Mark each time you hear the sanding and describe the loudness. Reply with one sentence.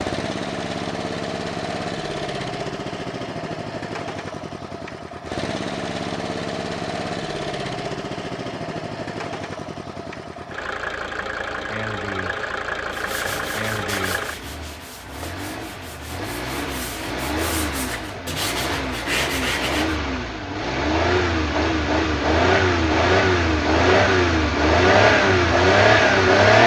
The sanding can be heard from 12.9 to 20.0 s, getting quieter then louder.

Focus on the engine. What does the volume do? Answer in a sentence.
The volume of the engine goes up.